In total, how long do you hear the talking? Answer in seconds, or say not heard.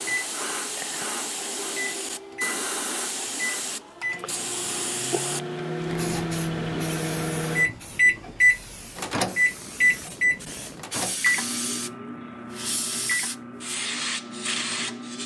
not heard.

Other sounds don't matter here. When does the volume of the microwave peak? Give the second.
8 s.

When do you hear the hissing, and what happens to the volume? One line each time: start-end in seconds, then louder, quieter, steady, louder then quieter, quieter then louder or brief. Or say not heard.
0.0-15.2 quieter then louder.